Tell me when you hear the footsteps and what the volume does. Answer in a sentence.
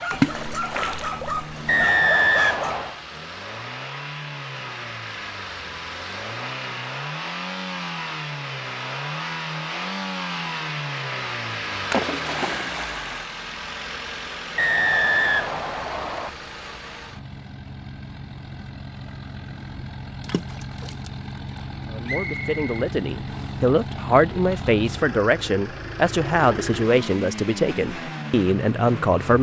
The footsteps can't be heard in this clip.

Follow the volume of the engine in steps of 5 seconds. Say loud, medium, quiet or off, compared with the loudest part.
medium, loud, loud, medium, loud, loud.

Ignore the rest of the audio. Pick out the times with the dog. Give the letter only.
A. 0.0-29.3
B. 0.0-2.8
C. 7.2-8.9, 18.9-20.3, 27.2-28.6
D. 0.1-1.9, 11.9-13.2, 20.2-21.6
B.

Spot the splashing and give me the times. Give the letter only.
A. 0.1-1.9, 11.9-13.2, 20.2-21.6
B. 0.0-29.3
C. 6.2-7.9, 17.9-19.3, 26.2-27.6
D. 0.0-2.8
A.